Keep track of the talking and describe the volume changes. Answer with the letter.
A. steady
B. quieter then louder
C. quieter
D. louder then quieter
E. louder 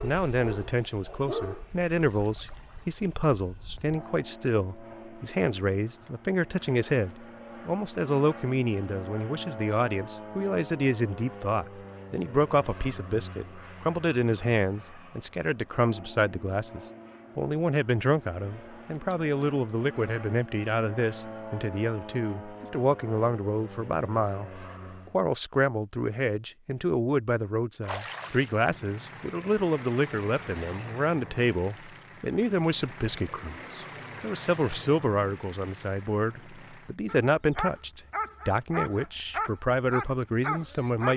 A.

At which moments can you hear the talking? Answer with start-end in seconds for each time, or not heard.
0.0-41.1.